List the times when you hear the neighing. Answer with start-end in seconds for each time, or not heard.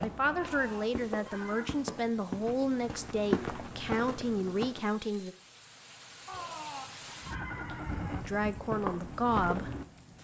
0.2-1.8, 6.2-8.2.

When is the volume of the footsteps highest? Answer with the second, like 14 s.
3 s.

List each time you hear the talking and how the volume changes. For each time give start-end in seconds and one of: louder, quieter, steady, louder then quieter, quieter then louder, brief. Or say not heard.
0.0-5.3 steady
8.2-10.1 brief.